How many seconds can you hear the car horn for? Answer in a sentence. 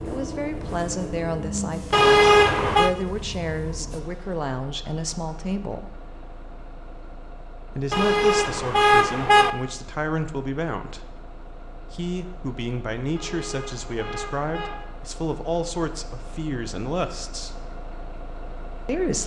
The car horn can be heard for 4 seconds in total.